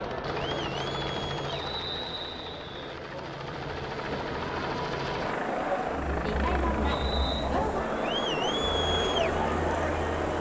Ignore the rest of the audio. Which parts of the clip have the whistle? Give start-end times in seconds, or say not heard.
1.4-2.8, 6.8-7.5.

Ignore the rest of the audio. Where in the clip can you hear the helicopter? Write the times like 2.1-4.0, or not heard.
0.0-10.3.